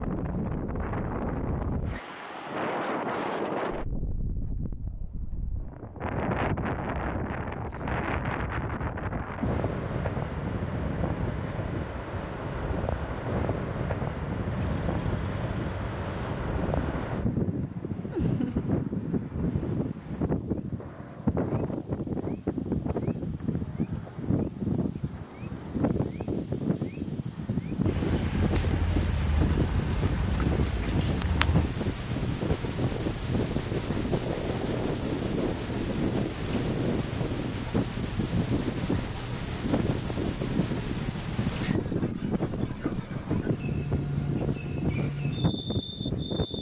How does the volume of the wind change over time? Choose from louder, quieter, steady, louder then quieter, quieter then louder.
steady.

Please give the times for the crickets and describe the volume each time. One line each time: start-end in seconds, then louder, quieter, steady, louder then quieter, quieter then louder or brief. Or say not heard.
14.5-46.5 quieter then louder.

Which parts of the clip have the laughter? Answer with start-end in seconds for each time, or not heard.
18.1-18.7.